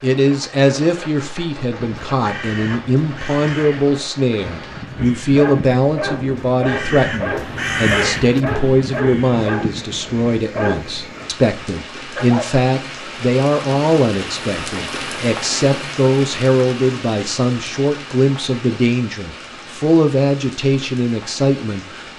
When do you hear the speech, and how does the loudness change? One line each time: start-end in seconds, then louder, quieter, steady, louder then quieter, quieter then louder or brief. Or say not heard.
0.0-22.1 steady.